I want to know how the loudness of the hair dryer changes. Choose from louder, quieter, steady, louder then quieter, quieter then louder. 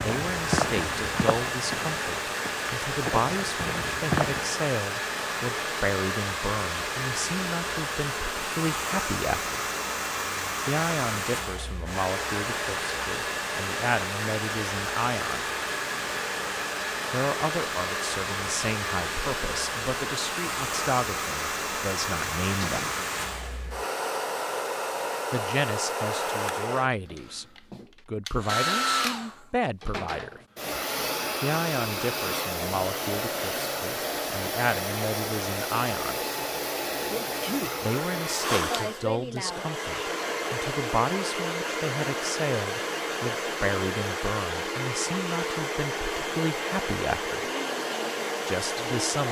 steady.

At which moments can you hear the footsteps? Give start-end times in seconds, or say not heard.
0.0-4.5.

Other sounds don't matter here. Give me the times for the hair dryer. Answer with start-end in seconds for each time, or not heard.
0.0-49.2.